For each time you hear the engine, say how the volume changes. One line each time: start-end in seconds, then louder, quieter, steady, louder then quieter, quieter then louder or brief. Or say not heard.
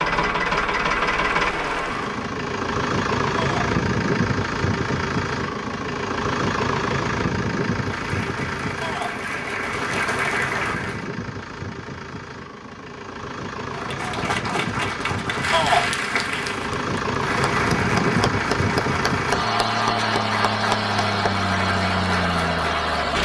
0.0-23.2 quieter then louder.